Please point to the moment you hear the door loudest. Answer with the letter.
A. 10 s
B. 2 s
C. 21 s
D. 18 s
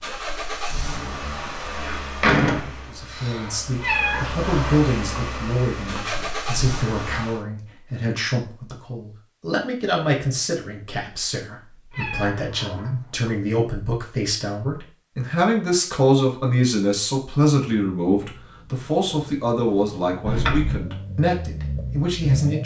B.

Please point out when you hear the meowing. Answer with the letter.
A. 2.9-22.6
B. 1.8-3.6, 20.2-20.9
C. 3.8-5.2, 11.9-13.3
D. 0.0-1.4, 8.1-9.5
C.